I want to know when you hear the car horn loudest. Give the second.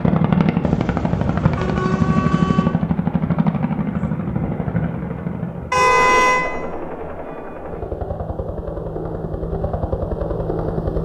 6 s.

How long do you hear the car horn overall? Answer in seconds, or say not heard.
3 s.